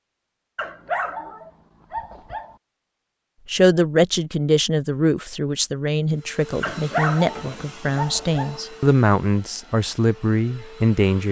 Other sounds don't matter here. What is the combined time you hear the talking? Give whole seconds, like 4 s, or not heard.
8 s.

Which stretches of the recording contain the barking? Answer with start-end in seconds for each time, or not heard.
0.6-2.5, 6.6-8.6.